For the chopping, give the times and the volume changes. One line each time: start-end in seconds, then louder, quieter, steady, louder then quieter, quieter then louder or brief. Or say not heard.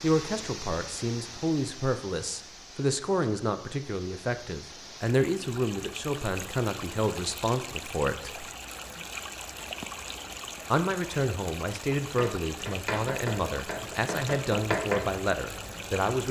12.0-16.1 louder then quieter.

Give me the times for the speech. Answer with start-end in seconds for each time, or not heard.
0.0-8.4, 10.7-16.2.